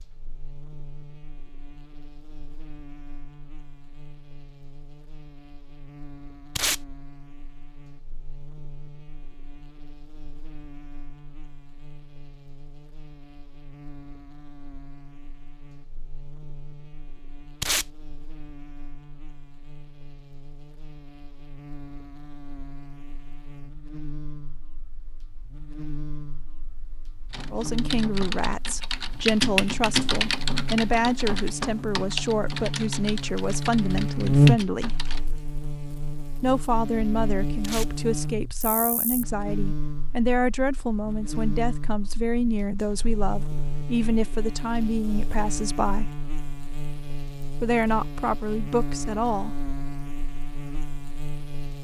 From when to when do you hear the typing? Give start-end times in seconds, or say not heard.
27.3-35.2.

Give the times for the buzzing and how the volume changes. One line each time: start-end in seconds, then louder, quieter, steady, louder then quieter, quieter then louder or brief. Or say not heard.
0.0-51.7 louder then quieter.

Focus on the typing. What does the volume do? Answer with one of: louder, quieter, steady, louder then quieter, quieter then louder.
louder then quieter.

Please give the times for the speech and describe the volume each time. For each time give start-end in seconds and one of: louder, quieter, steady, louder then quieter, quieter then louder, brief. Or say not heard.
27.5-35.0 steady
36.4-46.1 steady
47.6-49.6 brief.